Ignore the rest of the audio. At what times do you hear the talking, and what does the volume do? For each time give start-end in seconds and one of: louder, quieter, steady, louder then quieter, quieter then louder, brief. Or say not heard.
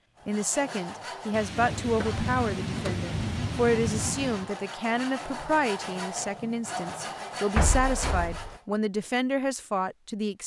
0.2-10.4 steady.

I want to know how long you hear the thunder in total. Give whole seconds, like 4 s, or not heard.
3 s.